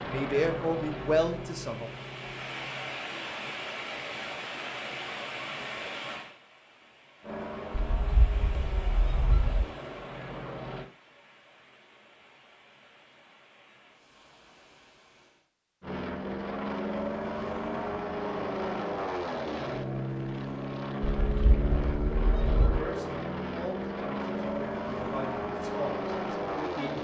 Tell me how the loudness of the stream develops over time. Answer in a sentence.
The loudness of the stream goes down.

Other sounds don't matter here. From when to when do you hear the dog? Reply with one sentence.
You can't hear the dog here.